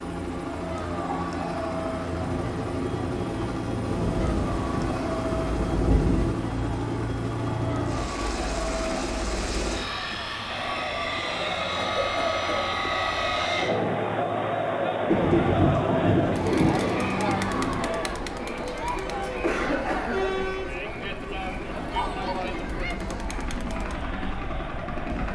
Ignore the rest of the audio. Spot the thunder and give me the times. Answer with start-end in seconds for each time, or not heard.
3.9-6.4, 15.1-17.8.